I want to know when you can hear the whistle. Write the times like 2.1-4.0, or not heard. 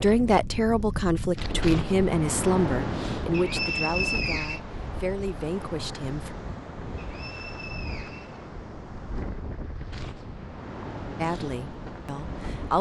3.3-4.6, 7.0-8.4.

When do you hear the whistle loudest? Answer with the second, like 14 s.
4 s.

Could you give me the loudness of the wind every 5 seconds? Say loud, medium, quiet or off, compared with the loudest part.
loud, medium, medium.